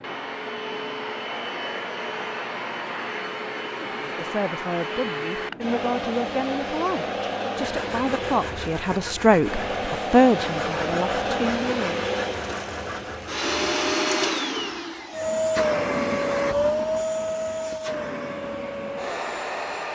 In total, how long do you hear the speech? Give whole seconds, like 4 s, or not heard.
8 s.